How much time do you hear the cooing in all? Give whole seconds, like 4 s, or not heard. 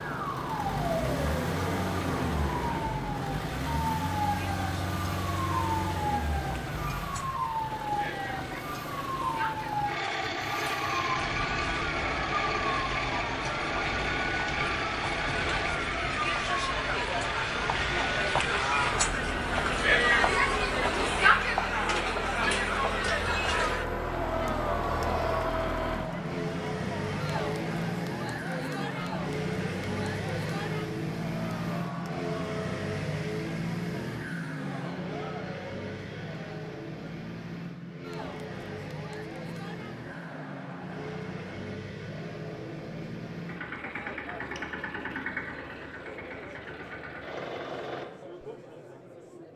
not heard.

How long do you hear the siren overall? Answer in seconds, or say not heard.
21 s.